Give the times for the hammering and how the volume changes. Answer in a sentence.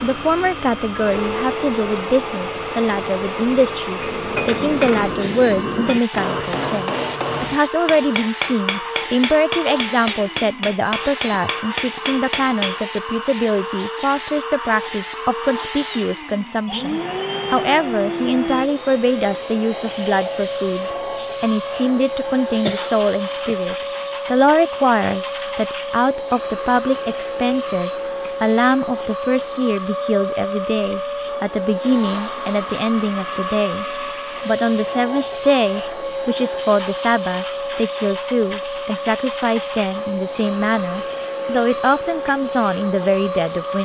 You can hear the hammering from 4.0 to 12.8 s, at a steady volume.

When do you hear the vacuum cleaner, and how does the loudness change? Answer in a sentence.
The vacuum cleaner can be heard from 0.0 to 43.8 s, at a steady volume.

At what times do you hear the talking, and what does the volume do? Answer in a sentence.
The talking can be heard from 0.0 to 33.9 s, at a steady volume; and from 34.5 to 43.8 s, at a steady volume.